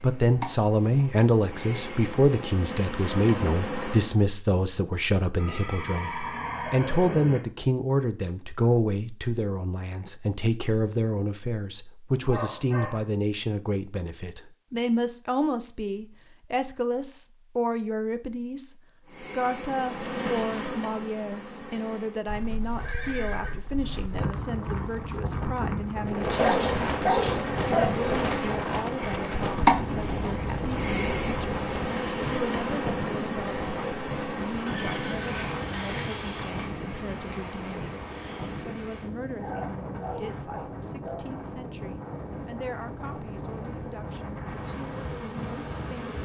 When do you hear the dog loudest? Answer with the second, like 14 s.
27 s.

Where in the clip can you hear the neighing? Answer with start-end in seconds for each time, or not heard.
5.3-7.4, 22.8-23.6, 34.6-36.6.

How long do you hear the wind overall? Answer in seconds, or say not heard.
24 s.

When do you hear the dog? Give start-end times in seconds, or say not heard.
12.1-13.1, 26.4-28.6, 39.4-41.2.